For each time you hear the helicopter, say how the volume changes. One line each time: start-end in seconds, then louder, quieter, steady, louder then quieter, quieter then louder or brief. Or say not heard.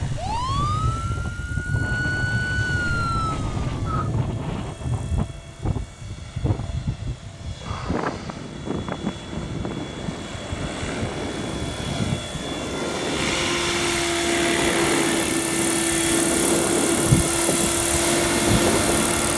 0.0-19.3 louder.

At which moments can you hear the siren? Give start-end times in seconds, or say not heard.
0.1-4.1.